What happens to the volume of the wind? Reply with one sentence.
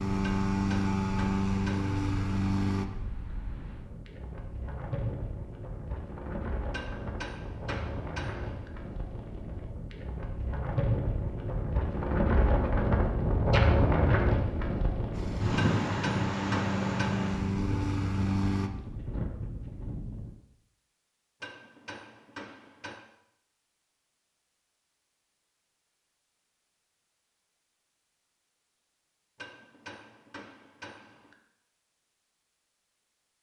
The loudness of the wind goes up, then down.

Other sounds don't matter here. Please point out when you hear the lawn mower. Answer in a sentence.
You can hear the lawn mower from 0.0 to 2.9 s and from 15.1 to 18.7 s.